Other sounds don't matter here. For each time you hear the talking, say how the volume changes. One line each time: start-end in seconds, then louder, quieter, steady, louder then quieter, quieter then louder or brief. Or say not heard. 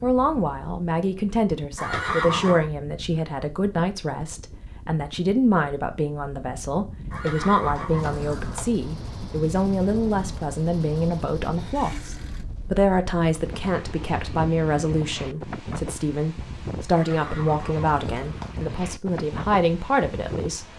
0.0-20.6 steady.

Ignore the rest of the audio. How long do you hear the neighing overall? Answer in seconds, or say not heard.
4 s.